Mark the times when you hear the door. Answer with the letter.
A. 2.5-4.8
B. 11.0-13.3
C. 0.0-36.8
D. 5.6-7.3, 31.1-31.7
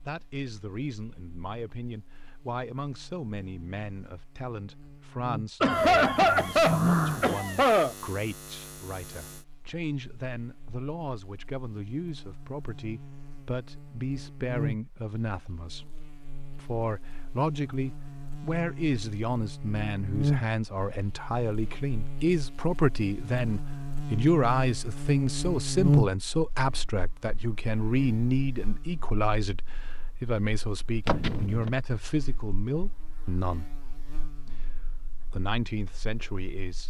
D.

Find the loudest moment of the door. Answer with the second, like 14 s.
7 s.